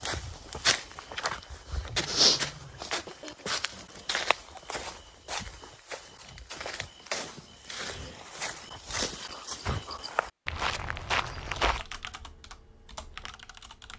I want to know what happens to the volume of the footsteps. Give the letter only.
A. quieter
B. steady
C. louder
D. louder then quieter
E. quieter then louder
E.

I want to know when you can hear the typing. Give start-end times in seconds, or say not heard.
11.6-13.9.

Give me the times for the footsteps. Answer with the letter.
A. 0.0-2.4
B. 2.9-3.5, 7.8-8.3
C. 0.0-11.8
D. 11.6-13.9
C.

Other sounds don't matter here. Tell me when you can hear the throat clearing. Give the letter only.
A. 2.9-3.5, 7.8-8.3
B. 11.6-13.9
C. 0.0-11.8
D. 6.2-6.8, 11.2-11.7
A.